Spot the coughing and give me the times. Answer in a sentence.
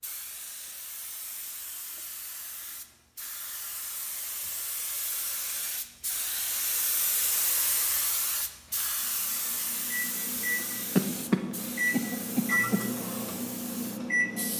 You can hear the coughing from 10.9 to 12.8 s.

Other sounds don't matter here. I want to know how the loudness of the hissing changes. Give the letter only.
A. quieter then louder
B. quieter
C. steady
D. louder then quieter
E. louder
D.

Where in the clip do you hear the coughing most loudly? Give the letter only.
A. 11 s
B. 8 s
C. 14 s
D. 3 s
A.